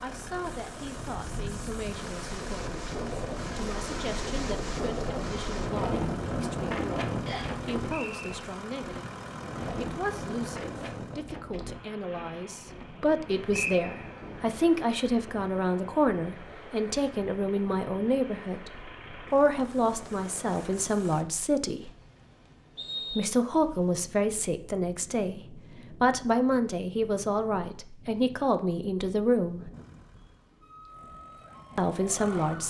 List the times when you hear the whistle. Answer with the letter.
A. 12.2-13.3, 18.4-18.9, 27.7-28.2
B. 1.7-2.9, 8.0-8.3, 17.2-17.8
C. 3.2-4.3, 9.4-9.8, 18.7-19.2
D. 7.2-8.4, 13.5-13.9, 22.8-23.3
D.